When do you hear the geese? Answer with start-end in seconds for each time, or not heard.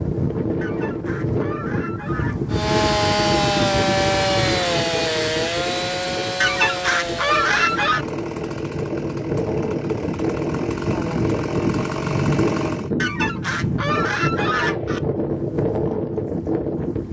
0.6-2.5, 6.4-8.1, 12.9-15.0.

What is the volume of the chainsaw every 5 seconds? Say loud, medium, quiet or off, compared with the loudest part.
loud, medium, medium, off.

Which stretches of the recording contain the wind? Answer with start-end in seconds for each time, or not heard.
0.0-17.0.